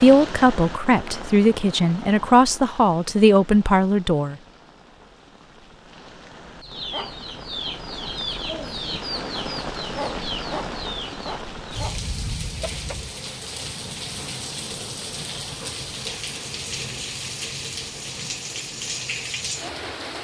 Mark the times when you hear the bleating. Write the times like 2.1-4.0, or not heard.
not heard.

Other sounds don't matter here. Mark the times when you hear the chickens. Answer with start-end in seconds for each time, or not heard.
6.6-13.1.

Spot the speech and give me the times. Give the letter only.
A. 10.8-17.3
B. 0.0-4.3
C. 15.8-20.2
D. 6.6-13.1
B.